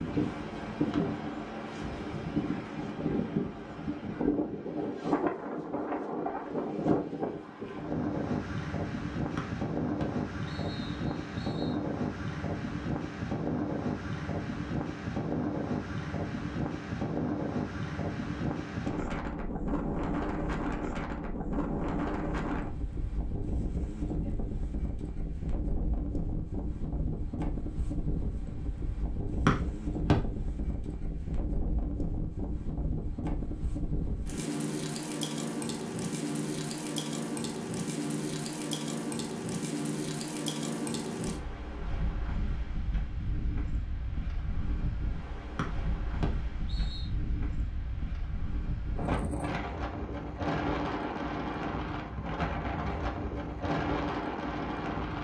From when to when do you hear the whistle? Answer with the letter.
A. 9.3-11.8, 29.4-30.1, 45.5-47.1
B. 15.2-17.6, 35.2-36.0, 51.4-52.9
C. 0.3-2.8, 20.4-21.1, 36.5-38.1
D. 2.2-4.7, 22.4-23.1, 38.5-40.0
A.